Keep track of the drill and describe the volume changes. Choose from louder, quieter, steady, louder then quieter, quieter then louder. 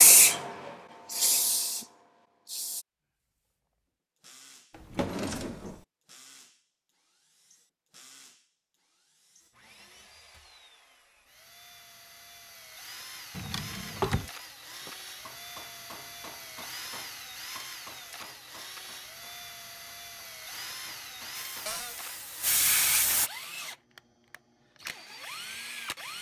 louder.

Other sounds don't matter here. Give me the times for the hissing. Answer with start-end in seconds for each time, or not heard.
0.0-2.9, 21.3-23.3.